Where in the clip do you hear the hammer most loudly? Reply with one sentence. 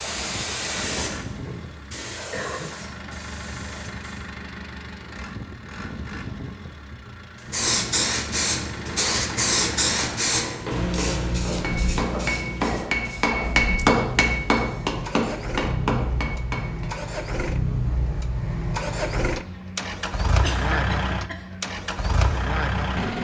The volume of the hammer peaks at 14 seconds.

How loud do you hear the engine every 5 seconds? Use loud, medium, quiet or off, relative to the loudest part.
medium, medium, medium, loud, loud.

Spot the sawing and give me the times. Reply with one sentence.
The sawing can't be heard in this clip.